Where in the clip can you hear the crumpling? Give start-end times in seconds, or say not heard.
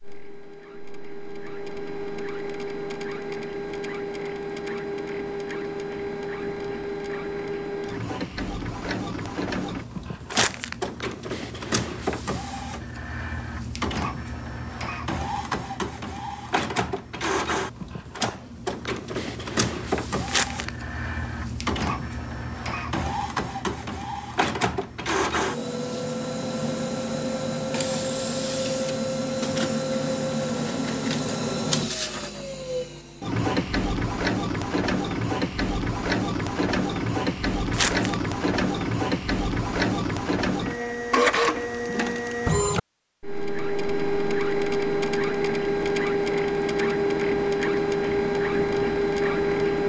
10.3-10.8, 20.2-20.7, 37.7-38.1.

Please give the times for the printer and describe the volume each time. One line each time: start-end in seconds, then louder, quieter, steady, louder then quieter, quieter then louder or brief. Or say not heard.
0.0-49.8 louder.